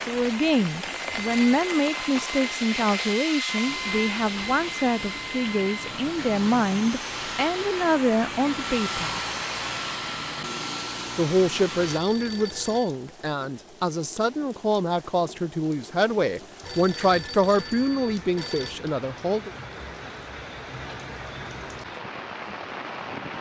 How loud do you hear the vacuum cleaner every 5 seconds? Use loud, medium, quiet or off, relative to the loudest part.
loud, loud, loud, off, off.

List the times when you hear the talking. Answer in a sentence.
You can hear the talking from 0.1 to 9.2 s and from 11.2 to 19.5 s.